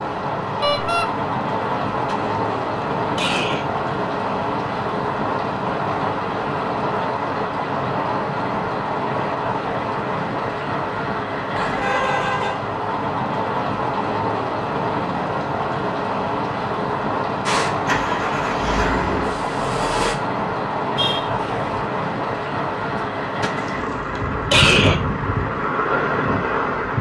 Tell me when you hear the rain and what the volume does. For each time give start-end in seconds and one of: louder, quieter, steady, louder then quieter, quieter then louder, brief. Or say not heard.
0.0-26.9 steady.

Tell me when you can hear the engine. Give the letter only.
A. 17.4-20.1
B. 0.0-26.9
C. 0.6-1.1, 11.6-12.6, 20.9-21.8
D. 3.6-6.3
A.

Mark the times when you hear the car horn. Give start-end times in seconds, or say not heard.
0.6-1.1, 11.6-12.6, 20.9-21.8.